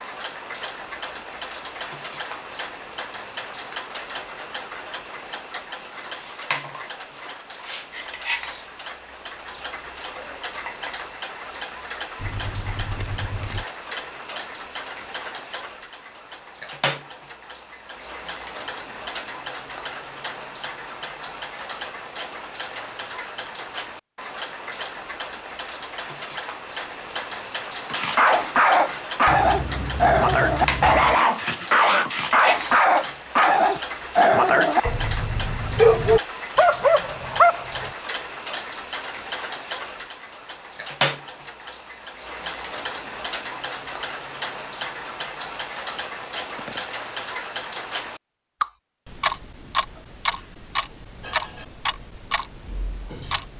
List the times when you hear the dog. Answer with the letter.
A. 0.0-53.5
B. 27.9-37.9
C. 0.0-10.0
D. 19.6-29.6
B.